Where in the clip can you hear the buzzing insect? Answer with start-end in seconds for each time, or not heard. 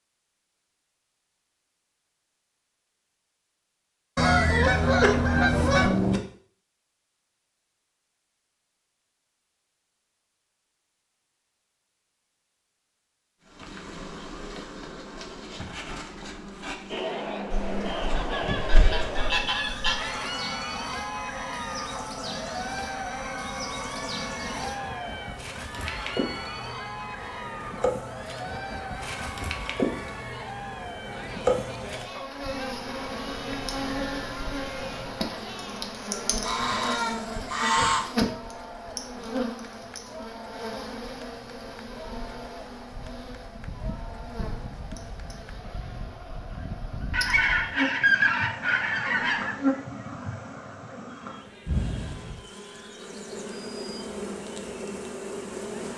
13.4-55.9.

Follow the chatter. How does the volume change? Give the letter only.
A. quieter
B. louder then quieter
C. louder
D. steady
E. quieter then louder
A.